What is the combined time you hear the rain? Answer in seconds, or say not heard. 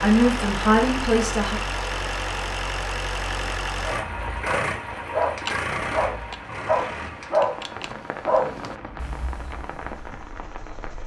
11 s.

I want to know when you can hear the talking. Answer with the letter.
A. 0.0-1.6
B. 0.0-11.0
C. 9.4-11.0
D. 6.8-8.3
A.